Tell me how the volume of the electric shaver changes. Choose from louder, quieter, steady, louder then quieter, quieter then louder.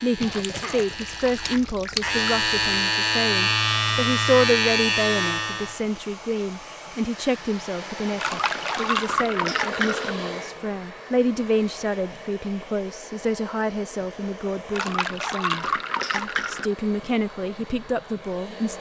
louder.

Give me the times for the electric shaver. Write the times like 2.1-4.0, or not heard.
0.0-5.8.